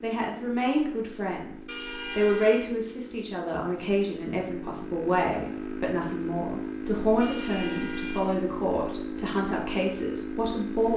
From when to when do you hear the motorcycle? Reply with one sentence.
You can hear the motorcycle from 0.0 to 10.9 s.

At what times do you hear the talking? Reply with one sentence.
You can hear the talking from 0.0 to 10.9 s.